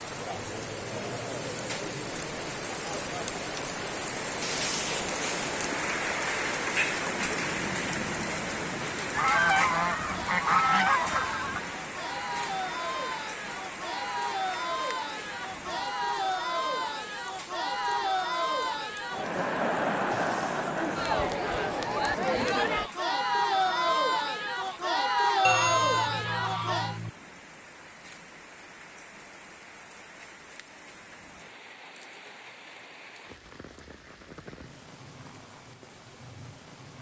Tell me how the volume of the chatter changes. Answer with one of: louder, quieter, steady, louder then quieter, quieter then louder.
louder.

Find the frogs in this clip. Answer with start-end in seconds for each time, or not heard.
not heard.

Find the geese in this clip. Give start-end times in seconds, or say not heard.
9.2-11.6, 25.4-27.1.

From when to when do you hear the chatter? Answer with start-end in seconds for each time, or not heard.
0.0-27.0.